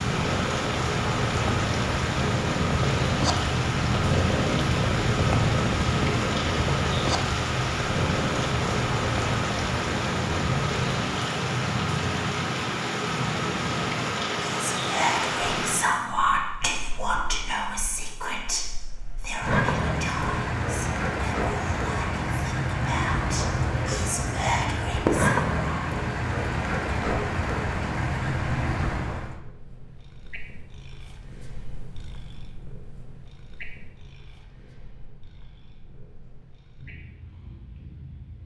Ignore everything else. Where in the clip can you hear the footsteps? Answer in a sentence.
You can't hear the footsteps here.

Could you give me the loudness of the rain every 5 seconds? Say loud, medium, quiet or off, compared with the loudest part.
loud, loud, loud, loud, loud, loud, off, off.